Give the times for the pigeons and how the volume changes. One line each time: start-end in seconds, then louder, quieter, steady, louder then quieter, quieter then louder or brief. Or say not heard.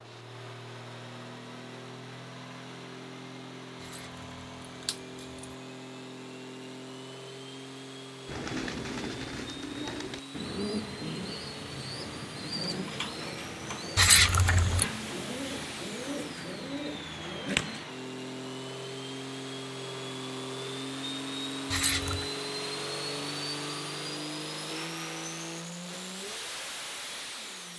8.2-17.9 steady.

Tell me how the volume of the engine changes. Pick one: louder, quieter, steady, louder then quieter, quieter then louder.
louder.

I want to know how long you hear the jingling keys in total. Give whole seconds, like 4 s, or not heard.
3 s.